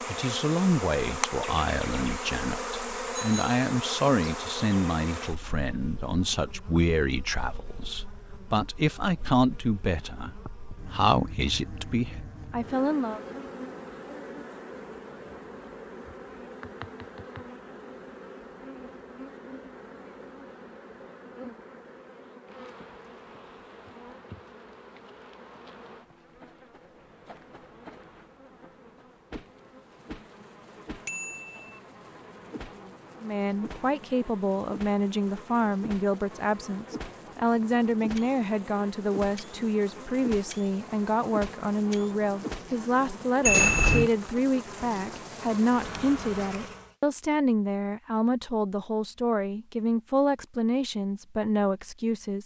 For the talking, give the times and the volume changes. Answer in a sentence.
You can hear the talking from 0.1 to 13.2 s, at a steady volume; and from 33.2 to 52.4 s, at a steady volume.